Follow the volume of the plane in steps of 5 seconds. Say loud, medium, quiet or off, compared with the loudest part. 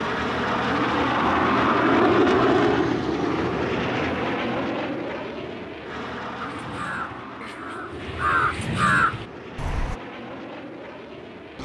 loud, quiet, quiet.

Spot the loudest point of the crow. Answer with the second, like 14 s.
9 s.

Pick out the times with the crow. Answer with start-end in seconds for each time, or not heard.
6.3-9.9.